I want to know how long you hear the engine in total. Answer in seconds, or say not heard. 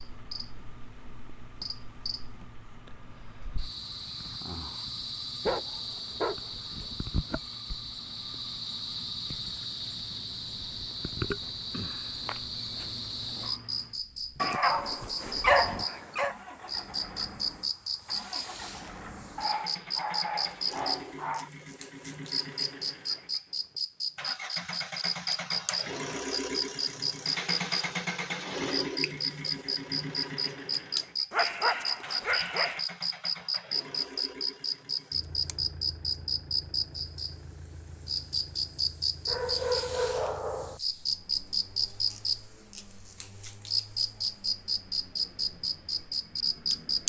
47 s.